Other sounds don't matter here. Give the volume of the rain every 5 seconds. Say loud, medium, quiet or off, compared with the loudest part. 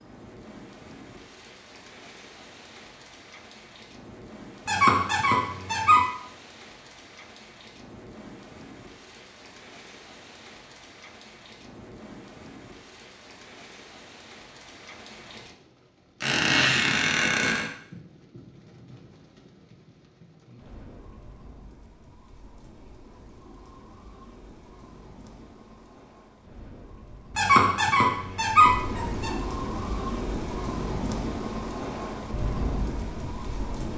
quiet, quiet, quiet, quiet, quiet, medium, loud.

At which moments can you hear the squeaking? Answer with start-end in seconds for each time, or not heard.
4.7-6.0, 16.2-17.7, 27.4-29.4.